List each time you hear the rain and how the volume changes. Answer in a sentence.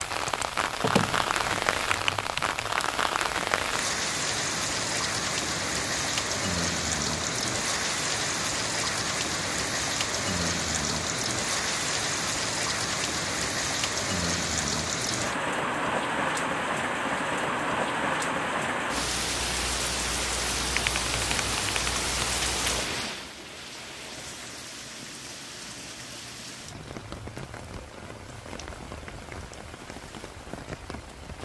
You can hear the rain from 0.0 to 31.4 s, getting quieter.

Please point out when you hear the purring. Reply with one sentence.
You can't hear the purring here.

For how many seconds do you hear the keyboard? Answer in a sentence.
You can hear the keyboard for 4 seconds altogether.